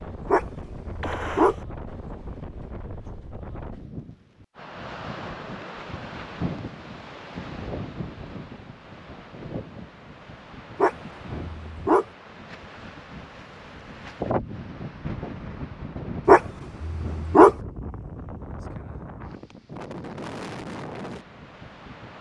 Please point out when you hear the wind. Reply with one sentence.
You can hear the wind from 0.0 to 22.1 s.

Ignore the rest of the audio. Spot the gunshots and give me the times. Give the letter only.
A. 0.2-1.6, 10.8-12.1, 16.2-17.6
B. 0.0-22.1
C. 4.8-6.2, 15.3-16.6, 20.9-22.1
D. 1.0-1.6
D.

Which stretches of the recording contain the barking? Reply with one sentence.
The barking can be heard from 0.2 to 1.6 s, from 10.8 to 12.1 s and from 16.2 to 17.6 s.